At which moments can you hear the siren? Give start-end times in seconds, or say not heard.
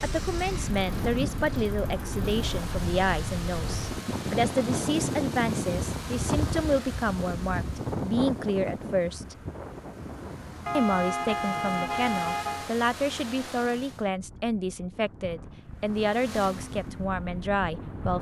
not heard.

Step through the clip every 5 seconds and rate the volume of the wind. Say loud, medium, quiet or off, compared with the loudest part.
loud, loud, quiet, medium.